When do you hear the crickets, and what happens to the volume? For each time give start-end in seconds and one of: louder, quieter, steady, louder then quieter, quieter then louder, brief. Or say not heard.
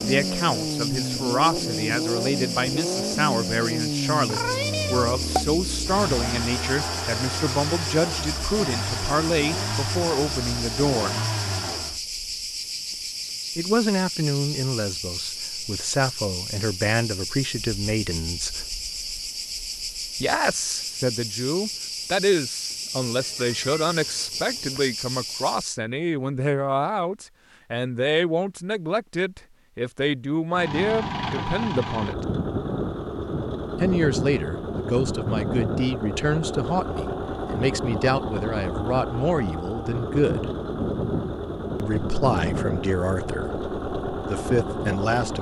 0.0-25.8 steady.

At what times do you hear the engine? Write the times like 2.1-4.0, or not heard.
0.0-12.0, 30.5-45.3.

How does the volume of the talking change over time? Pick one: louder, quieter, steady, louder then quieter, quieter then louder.
steady.